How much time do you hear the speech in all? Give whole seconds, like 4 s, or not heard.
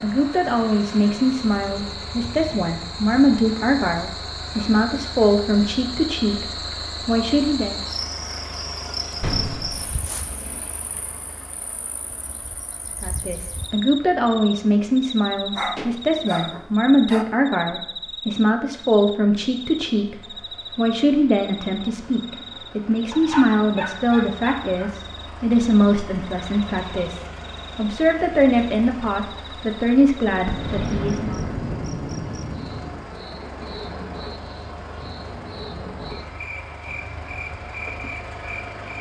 26 s.